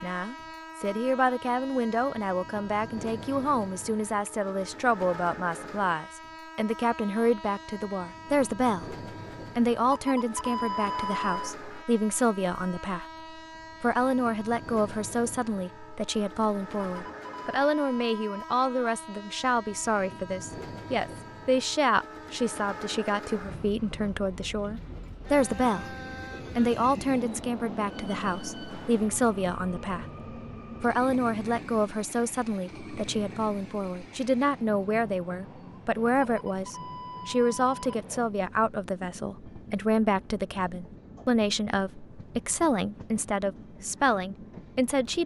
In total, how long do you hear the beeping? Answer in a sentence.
You can hear the beeping for 5 seconds altogether.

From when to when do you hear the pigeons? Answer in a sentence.
You can't hear the pigeons here.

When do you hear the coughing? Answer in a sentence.
The coughing can't be heard in this clip.